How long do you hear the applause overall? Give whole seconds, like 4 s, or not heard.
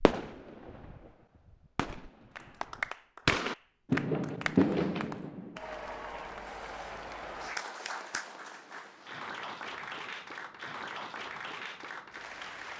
10 s.